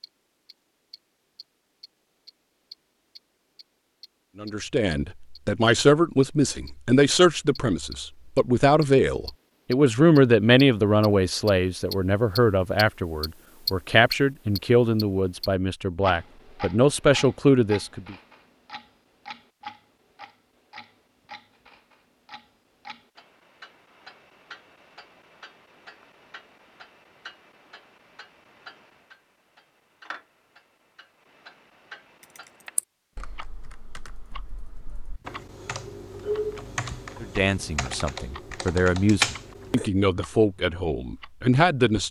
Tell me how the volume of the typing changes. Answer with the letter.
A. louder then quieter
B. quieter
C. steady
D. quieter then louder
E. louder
E.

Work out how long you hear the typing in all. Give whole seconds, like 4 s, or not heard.
8 s.